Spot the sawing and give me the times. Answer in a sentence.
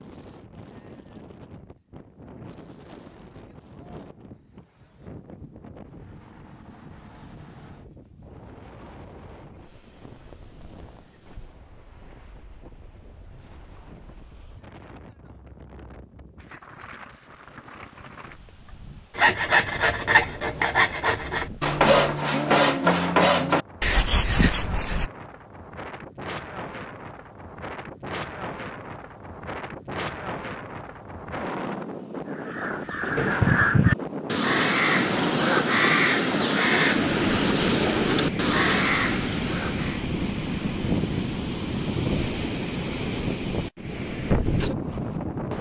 The sawing can be heard from 19.1 to 25.1 s.